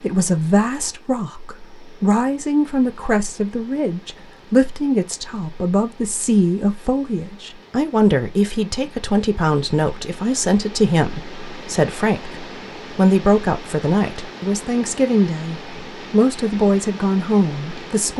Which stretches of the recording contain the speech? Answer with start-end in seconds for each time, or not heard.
0.0-18.1.